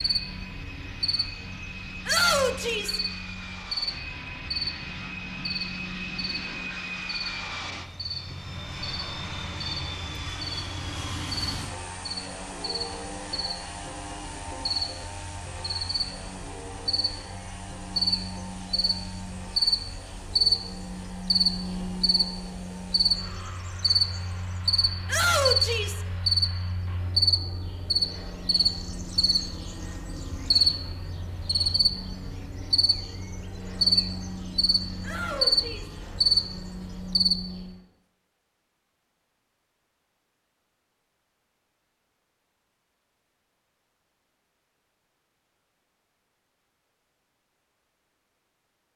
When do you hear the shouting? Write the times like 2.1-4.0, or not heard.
2.0-3.0, 25.1-26.0, 35.0-36.0.